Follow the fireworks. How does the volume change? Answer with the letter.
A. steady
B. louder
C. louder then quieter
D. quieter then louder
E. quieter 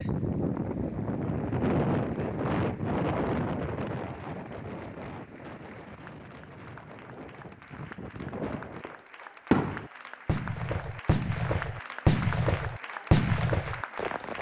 D.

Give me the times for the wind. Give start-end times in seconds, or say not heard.
0.0-8.8.